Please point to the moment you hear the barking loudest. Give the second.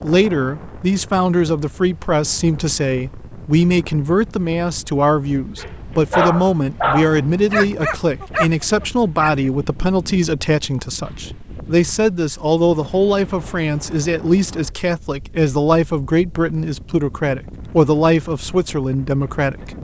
6 s.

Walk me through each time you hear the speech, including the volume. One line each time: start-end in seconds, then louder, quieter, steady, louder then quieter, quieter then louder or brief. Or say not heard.
0.0-19.7 steady.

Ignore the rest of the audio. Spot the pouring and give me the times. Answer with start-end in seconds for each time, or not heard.
not heard.